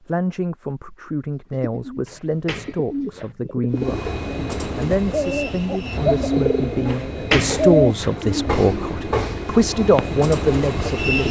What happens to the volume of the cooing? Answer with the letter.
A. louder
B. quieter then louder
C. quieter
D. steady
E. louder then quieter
E.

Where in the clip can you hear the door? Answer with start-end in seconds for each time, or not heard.
2.0-3.4, 6.8-8.2.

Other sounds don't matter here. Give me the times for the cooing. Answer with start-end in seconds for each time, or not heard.
1.5-10.2.